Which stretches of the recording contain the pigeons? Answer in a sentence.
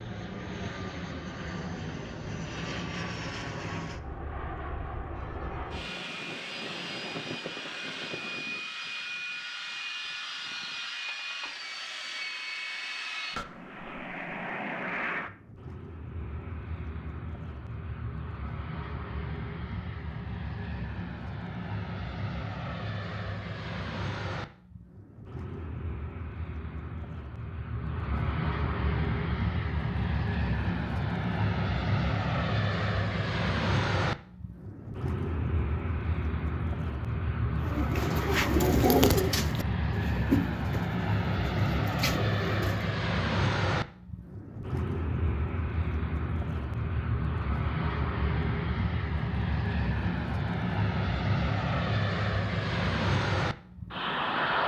You can hear the pigeons from 37.5 to 43.0 s.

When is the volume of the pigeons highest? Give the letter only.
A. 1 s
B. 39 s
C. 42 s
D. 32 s
B.